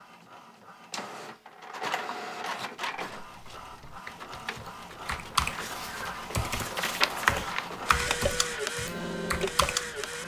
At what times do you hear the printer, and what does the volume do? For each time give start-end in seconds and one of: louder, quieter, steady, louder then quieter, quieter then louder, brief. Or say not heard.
0.0-10.2 louder.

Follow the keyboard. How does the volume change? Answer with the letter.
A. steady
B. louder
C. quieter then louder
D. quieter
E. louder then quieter
E.